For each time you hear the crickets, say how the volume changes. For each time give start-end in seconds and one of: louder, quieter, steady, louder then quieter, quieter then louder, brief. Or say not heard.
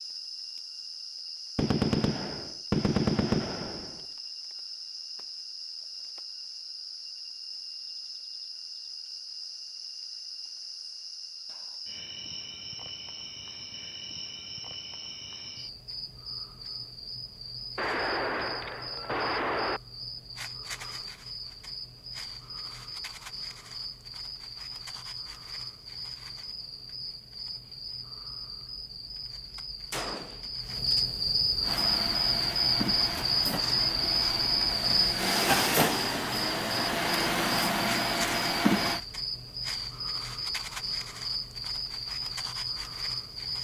0.0-43.5 louder.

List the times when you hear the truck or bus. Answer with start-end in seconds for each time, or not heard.
31.6-39.0.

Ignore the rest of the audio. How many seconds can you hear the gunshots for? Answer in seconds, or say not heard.
6 s.